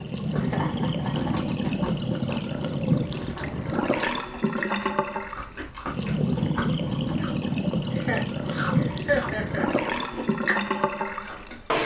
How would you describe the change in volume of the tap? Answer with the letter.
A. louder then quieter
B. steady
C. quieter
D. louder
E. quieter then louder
B.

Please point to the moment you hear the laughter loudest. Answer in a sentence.
The loudest moment of the laughter is at 9 seconds.